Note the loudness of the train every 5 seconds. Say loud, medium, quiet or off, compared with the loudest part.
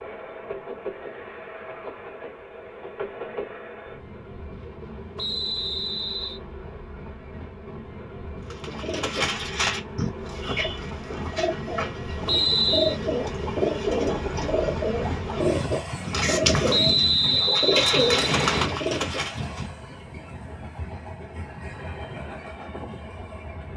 medium, medium, loud, loud, medium.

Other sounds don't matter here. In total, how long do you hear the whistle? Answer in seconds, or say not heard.
4 s.